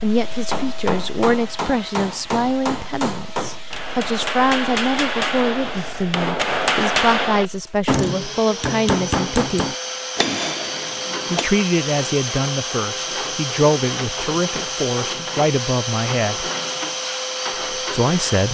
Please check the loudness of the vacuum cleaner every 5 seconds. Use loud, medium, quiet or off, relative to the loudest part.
quiet, medium, loud, loud.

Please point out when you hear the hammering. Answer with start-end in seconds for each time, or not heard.
0.2-11.5.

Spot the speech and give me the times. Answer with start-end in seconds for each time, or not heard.
0.0-9.8, 11.3-16.5, 17.8-18.4.